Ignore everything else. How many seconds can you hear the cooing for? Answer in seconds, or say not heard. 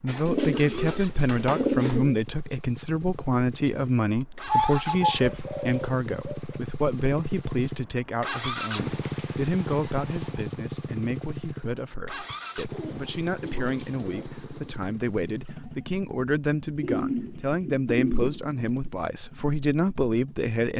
10 s.